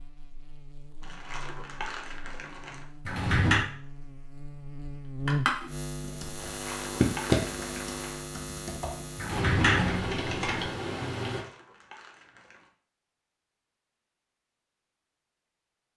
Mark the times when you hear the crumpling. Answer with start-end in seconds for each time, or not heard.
1.0-2.9, 6.3-8.2, 11.3-12.7.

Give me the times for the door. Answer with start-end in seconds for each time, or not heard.
3.0-3.6, 9.2-10.7.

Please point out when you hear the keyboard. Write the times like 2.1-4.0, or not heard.
5.2-11.4.